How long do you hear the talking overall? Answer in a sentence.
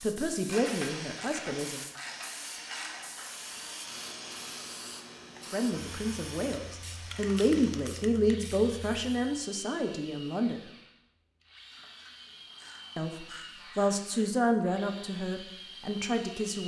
You can hear the talking for 11 seconds altogether.